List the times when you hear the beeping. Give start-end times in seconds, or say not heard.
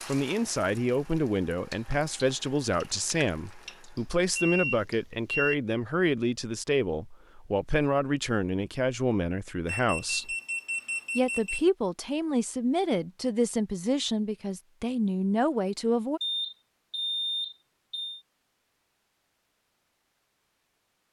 4.0-5.5, 9.7-11.7, 16.2-18.2.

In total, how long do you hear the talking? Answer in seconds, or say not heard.
15 s.